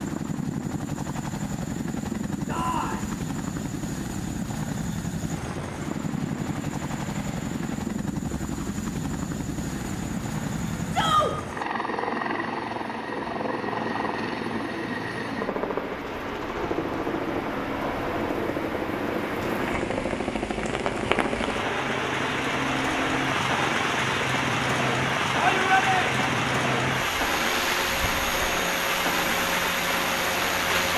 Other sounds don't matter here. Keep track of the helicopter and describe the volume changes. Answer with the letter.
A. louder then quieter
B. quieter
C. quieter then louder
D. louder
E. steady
E.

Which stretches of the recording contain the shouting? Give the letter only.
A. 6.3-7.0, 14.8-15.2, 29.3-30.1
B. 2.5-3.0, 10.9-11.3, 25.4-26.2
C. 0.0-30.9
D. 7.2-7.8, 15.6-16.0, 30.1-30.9
B.